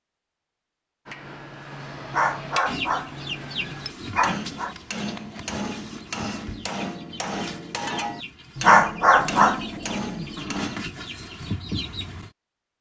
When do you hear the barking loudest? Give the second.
9 s.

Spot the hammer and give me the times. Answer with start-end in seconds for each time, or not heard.
1.1-10.8.